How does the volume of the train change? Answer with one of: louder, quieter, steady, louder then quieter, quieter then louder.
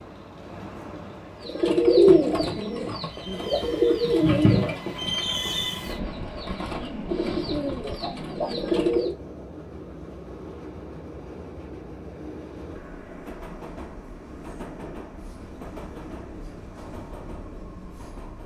louder then quieter.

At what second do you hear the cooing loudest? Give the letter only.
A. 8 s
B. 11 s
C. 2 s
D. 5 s
C.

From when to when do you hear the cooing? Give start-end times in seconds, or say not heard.
1.4-9.2.